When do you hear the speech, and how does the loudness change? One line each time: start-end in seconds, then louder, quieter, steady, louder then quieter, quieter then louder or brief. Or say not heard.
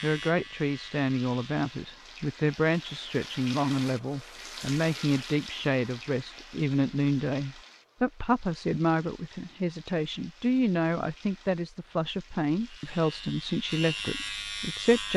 0.0-15.1 steady.